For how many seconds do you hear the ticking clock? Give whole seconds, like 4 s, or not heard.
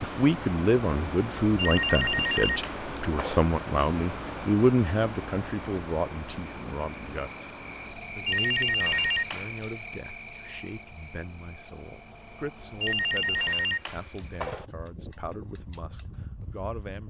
not heard.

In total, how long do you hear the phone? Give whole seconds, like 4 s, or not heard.
5 s.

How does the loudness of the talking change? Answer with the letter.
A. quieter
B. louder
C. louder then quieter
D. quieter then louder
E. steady
A.